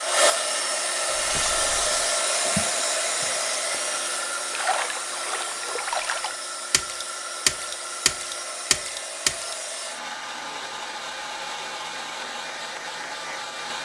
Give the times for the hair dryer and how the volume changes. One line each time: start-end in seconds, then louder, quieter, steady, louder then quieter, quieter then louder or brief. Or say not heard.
0.0-13.7 quieter.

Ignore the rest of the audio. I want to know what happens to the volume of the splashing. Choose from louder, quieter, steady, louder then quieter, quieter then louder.
quieter then louder.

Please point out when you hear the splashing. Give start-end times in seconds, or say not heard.
1.1-9.6.